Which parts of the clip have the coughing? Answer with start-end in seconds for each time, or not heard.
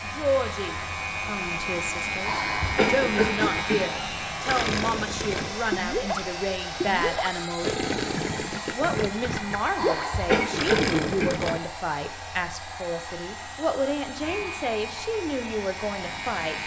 2.2-3.9, 9.8-11.4.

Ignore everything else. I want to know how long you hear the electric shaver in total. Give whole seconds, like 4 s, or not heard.
7 s.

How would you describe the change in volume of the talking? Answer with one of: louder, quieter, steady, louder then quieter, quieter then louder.
steady.